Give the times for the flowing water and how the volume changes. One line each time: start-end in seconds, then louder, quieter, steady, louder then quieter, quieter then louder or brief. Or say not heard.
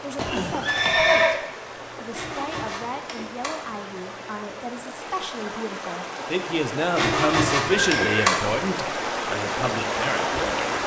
0.0-10.8 louder.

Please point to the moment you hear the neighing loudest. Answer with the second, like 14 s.
1 s.